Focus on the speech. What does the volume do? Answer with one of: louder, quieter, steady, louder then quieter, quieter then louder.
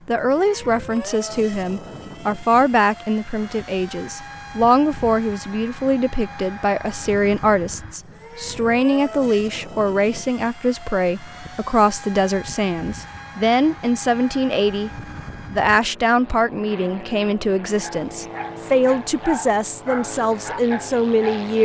steady.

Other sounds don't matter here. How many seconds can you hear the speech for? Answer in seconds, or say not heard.
21 s.